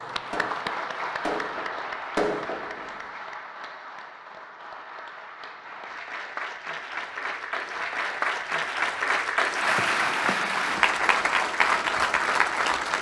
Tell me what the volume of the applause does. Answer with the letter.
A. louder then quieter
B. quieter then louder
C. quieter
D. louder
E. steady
B.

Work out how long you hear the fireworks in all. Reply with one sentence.
The fireworks can be heard for 3 seconds in total.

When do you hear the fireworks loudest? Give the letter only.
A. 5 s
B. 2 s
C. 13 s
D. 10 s
B.